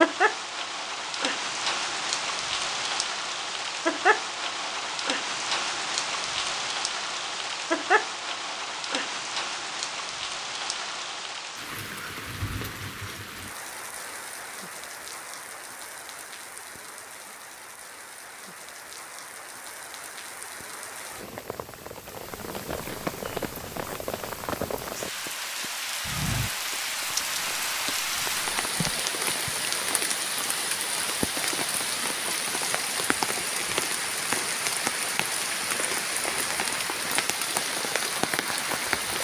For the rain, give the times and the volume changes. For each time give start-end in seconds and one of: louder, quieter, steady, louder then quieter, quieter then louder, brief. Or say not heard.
0.0-39.2 quieter then louder.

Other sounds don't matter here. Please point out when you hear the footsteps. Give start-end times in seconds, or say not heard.
22.4-28.9.